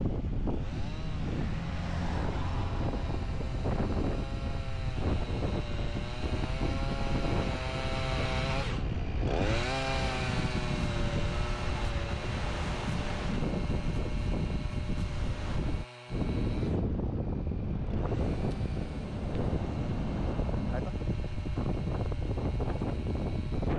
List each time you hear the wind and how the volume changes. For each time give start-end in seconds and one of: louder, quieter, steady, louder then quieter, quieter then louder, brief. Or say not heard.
0.0-23.7 steady.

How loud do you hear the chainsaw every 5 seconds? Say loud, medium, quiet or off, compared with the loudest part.
medium, loud, loud, quiet, quiet.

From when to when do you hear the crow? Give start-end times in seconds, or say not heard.
not heard.